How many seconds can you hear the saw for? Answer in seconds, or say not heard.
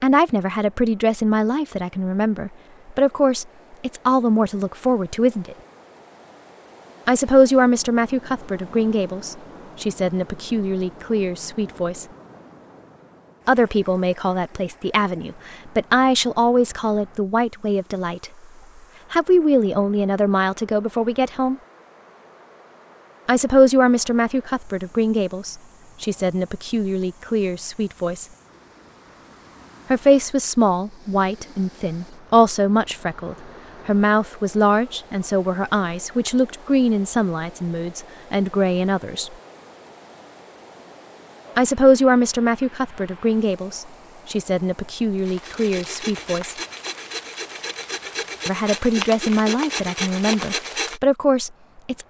6 s.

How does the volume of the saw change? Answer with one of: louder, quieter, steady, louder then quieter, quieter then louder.
louder.